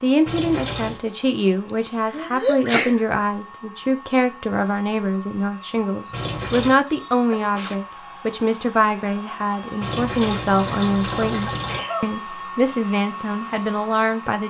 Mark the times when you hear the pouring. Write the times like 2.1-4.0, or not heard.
0.2-1.0, 6.1-6.8, 9.8-11.8.